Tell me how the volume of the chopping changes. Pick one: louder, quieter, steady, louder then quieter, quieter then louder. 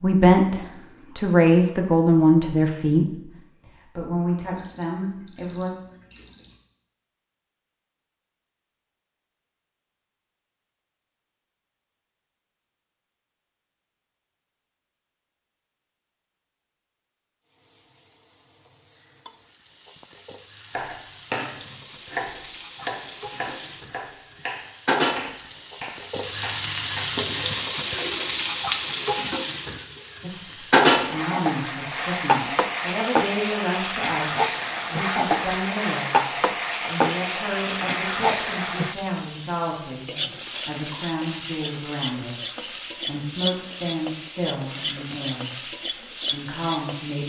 quieter.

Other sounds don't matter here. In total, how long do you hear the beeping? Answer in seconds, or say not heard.
2 s.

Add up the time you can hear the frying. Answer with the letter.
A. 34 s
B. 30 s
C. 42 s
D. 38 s
B.